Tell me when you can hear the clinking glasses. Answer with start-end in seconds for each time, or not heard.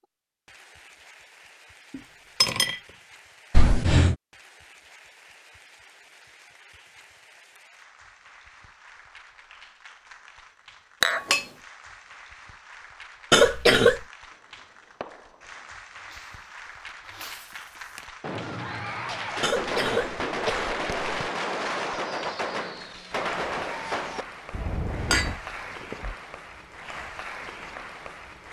1.9-2.8, 11.0-11.5, 25.1-26.1.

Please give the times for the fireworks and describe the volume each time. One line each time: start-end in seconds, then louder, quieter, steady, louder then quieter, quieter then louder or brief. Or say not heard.
14.2-25.4 louder.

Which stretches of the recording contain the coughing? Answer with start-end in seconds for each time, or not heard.
3.5-4.2, 13.3-14.0, 19.4-21.1.